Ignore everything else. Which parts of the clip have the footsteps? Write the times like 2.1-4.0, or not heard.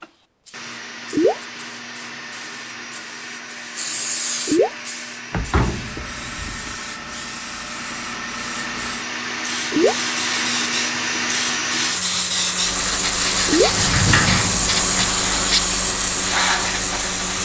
not heard.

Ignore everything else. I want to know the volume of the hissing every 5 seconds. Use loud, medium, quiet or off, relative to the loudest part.
medium, quiet, loud, loud.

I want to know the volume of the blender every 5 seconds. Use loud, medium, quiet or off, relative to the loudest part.
medium, medium, loud, loud.